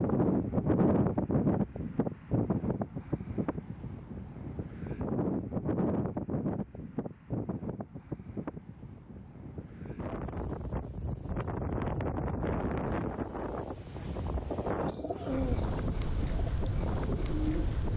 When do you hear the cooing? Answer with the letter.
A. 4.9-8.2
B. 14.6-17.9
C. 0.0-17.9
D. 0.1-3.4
B.